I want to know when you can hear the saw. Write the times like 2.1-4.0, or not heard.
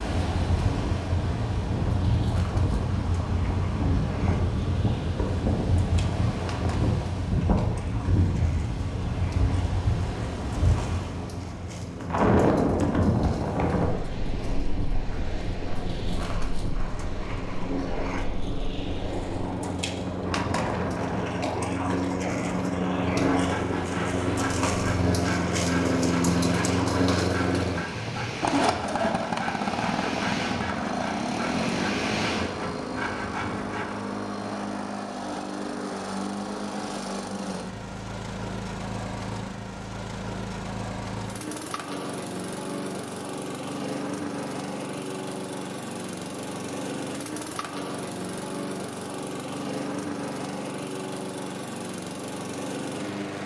23.1-34.0.